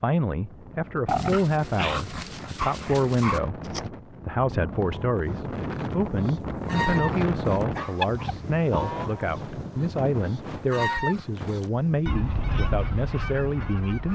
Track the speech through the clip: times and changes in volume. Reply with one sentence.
The speech can be heard from 0.0 to 14.0 s, at a steady volume.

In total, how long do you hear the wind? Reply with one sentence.
The wind can be heard for 14 seconds in total.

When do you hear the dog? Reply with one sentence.
The dog can be heard from 1.1 to 3.9 s and from 7.8 to 8.4 s.